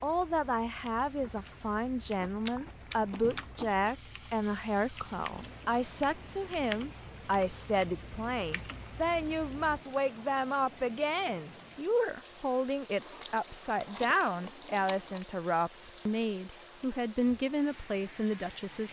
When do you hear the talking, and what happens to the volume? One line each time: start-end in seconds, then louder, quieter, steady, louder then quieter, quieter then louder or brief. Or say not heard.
0.0-18.8 steady.